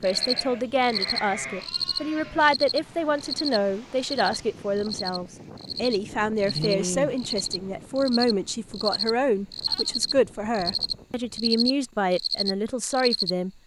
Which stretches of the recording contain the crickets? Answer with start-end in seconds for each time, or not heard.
0.0-13.3.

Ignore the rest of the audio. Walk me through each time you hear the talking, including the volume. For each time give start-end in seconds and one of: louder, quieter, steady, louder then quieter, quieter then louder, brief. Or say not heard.
0.0-13.5 steady.